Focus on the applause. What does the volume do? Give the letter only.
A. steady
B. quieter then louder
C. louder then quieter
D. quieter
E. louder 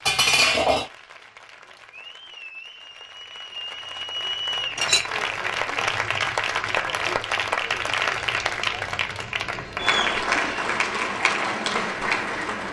E.